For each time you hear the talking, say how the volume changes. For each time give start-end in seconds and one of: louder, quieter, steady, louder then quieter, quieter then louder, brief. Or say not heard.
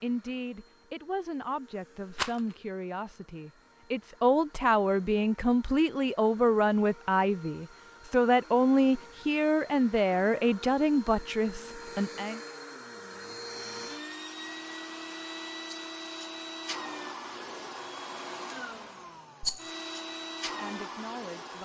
0.0-12.4 louder
20.4-21.6 brief.